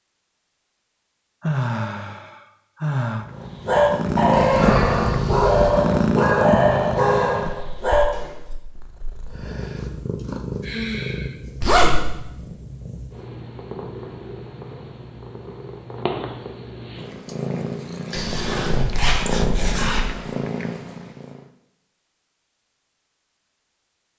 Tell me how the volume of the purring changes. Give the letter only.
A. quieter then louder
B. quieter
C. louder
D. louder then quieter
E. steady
A.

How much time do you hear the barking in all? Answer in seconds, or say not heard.
5 s.